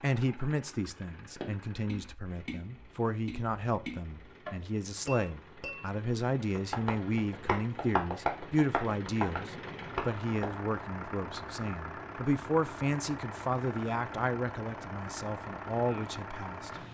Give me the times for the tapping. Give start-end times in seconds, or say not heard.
1.4-10.6.